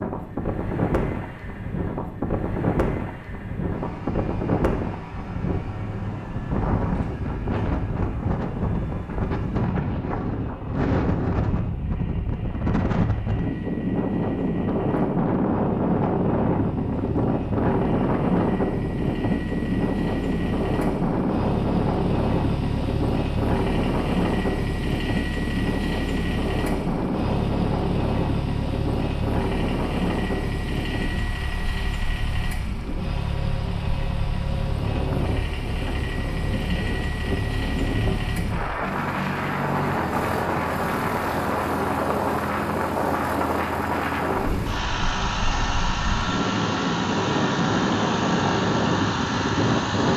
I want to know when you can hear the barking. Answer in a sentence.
You can't hear the barking here.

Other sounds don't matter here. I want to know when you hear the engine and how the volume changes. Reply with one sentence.
The engine can be heard from 0.0 to 50.1 s, getting louder.